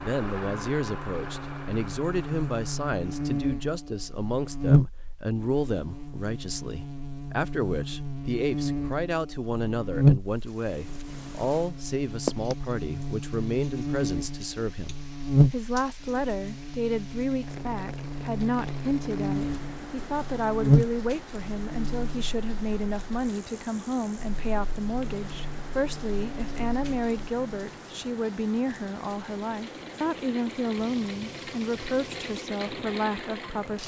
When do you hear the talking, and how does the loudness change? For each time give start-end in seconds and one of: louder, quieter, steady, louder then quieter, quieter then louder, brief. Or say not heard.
0.0-33.8 steady.